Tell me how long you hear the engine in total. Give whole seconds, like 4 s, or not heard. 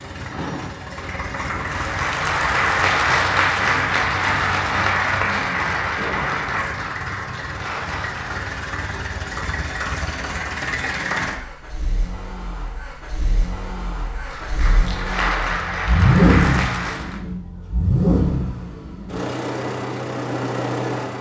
21 s.